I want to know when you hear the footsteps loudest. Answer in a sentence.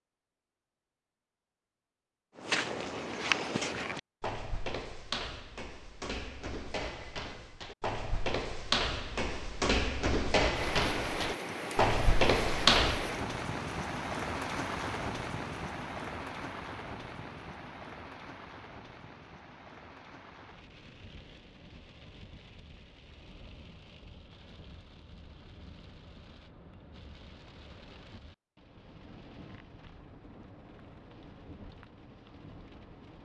The loudest moment of the footsteps is at 13 seconds.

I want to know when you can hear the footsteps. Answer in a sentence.
The footsteps can be heard from 2.4 to 13.2 s.